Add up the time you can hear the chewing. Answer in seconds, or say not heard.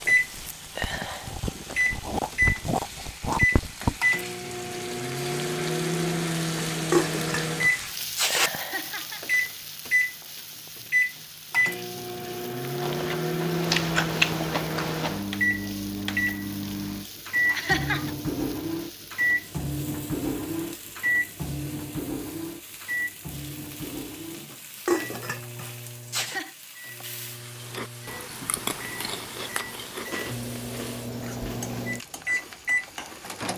12 s.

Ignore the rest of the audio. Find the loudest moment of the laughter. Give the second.
18 s.